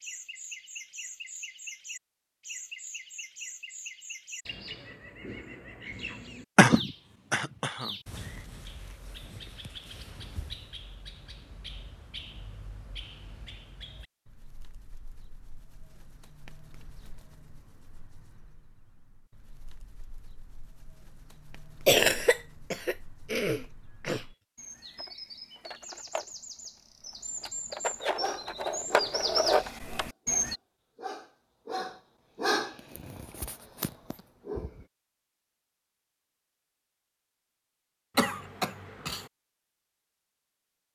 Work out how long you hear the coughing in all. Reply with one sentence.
You can hear the coughing for 5 seconds altogether.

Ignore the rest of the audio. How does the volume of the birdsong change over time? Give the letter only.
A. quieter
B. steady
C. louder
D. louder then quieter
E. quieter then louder
E.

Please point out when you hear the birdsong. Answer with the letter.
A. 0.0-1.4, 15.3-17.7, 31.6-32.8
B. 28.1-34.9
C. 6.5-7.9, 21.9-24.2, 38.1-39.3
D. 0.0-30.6
D.